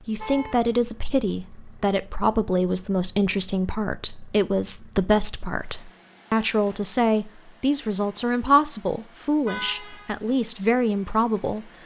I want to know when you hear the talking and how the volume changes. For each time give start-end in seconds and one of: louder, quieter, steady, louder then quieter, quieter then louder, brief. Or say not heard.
0.1-11.7 steady.